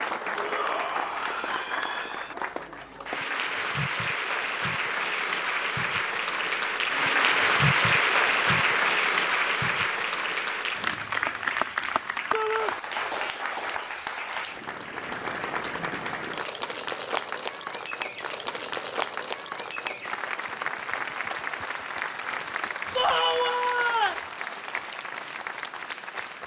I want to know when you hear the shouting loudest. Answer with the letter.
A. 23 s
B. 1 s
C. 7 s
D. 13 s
A.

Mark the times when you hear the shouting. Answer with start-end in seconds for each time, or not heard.
0.3-2.4, 12.3-12.8, 22.9-24.2.